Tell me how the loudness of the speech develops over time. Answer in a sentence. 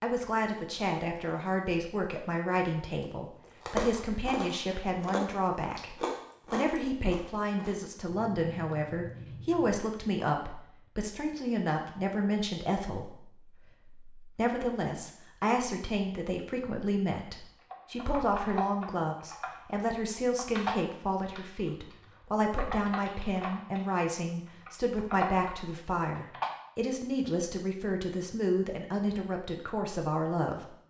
The loudness of the speech stays about the same.